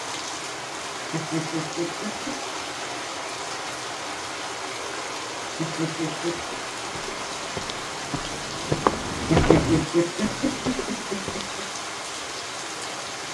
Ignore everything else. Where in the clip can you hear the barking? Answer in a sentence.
You can't hear the barking here.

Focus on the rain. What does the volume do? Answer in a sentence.
The volume of the rain stays about the same.